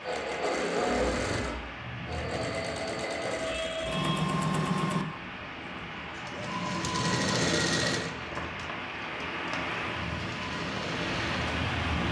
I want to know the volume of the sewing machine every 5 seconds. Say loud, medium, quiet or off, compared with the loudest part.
loud, loud, medium.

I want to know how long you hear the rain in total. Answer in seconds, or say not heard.
12 s.